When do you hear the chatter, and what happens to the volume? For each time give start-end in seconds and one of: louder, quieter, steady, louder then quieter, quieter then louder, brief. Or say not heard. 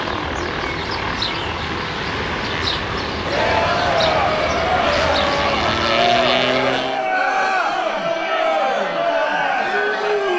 3.2-10.3 steady.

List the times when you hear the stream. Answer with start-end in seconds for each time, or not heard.
not heard.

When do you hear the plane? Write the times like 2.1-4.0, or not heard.
0.0-7.1.